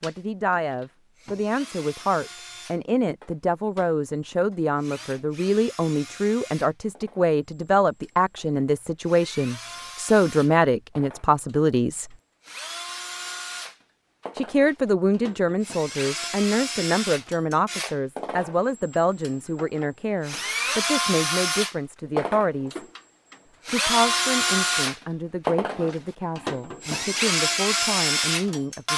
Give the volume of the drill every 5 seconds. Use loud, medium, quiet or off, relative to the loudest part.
quiet, quiet, quiet, medium, loud, loud.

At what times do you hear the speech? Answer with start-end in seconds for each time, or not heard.
0.0-12.1, 14.3-22.8, 23.7-28.9.